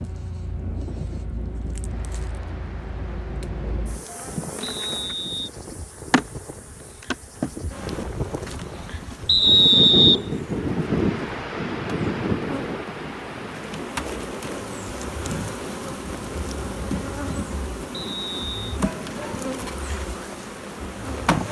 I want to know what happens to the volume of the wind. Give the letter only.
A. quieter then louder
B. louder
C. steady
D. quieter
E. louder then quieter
E.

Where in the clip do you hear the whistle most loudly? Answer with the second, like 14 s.
10 s.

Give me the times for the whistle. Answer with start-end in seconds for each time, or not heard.
4.6-5.5, 9.2-10.2, 17.9-18.6.